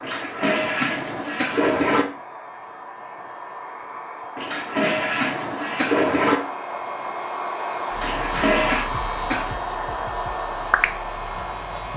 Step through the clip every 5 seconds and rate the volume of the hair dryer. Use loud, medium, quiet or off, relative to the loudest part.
medium, loud, loud.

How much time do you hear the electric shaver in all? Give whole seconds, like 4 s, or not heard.
4 s.